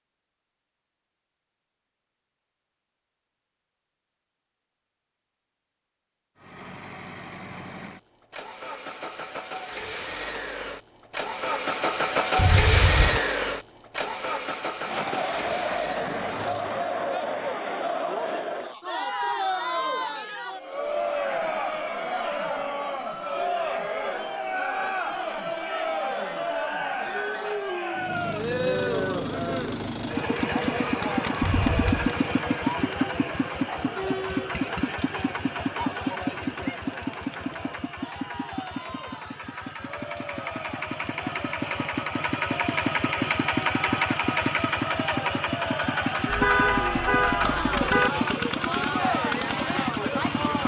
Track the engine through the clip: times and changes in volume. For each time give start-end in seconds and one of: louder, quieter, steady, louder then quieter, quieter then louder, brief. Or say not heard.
6.3-16.8 louder then quieter
27.9-50.6 quieter then louder.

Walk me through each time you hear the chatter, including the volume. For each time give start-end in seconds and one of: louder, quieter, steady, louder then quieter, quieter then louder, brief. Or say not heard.
14.8-50.6 quieter then louder.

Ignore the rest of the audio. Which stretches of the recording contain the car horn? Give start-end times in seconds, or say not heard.
12.3-13.2, 31.4-31.9, 46.2-48.1.